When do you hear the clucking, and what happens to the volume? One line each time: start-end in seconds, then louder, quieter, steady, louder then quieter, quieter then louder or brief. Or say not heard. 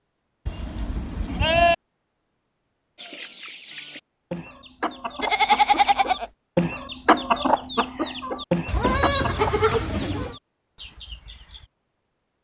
3.0-11.7 louder then quieter.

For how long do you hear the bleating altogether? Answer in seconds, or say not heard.
4 s.